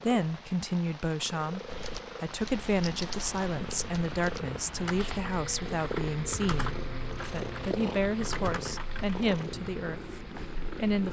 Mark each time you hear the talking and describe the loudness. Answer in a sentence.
The talking can be heard from 0.0 to 11.0 s, at a steady volume.